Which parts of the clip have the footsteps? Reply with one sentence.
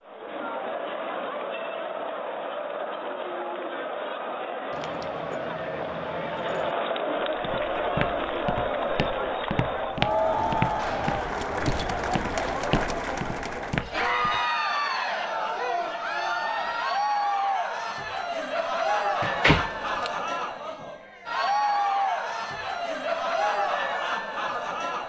The footsteps can be heard from 7.3 to 14.4 s.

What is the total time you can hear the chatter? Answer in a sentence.
You can hear the chatter for 25 seconds altogether.